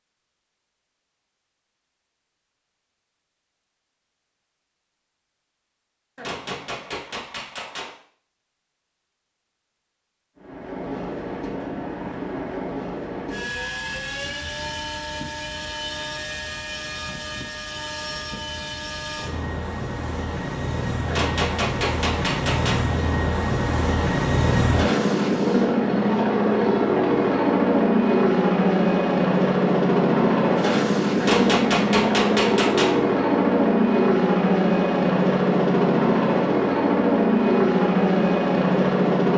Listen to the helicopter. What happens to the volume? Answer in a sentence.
The volume of the helicopter goes up.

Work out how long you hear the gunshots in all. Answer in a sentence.
The gunshots can be heard for 5 seconds in total.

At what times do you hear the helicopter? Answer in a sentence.
The helicopter can be heard from 10.3 to 39.3 s.